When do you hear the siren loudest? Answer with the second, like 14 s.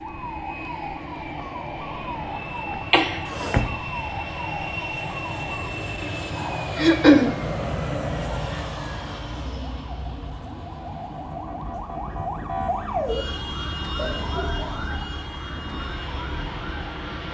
13 s.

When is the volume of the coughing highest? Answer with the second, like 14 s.
7 s.